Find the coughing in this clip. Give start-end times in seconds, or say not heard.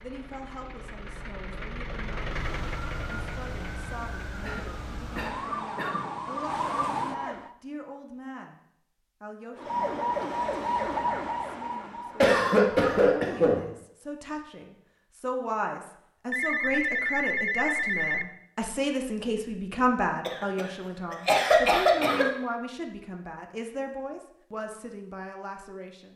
4.4-6.0, 12.2-13.7, 20.2-22.2.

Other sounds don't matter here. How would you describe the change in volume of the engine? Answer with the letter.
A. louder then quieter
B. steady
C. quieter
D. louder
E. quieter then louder
A.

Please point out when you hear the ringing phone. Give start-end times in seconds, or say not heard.
16.3-18.2.